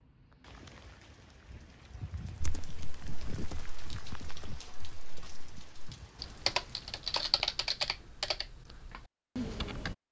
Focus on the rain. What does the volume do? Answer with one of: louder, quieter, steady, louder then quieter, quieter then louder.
louder then quieter.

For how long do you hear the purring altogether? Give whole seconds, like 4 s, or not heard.
not heard.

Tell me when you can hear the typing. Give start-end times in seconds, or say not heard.
2.4-9.9.